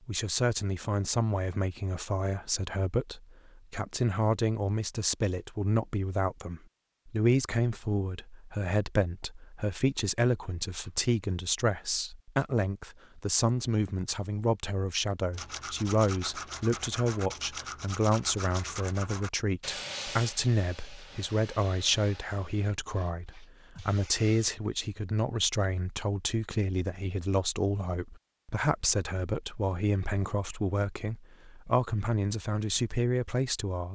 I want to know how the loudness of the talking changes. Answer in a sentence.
The volume of the talking stays about the same.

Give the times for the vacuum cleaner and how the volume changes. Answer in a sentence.
You can't hear the vacuum cleaner here.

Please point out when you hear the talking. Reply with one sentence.
You can hear the talking from 0.1 to 33.9 s.